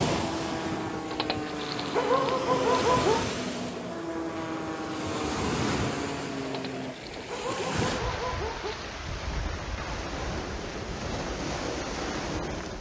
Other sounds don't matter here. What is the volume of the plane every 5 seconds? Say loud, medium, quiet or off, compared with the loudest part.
loud, loud, off.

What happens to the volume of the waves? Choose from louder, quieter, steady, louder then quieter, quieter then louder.
steady.